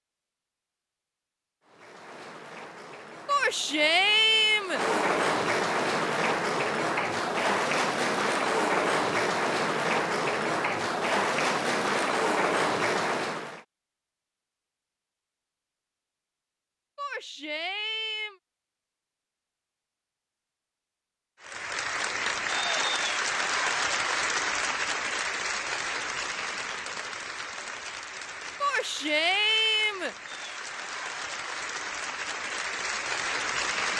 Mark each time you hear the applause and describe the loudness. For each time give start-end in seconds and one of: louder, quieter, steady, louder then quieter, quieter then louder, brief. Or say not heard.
1.6-13.7 louder
21.4-33.9 quieter then louder.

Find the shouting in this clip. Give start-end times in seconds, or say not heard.
3.2-4.8, 16.9-18.4, 28.6-30.1.